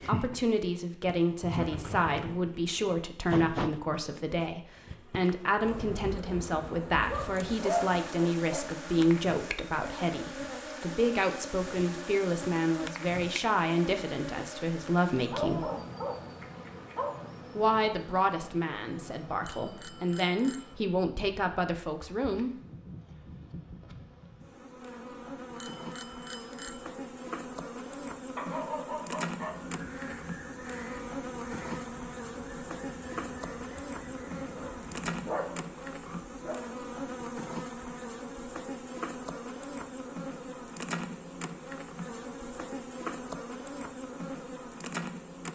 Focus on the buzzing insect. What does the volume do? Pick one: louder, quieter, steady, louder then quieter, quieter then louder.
quieter then louder.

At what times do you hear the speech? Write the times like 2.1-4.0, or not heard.
0.1-15.7, 17.6-22.6.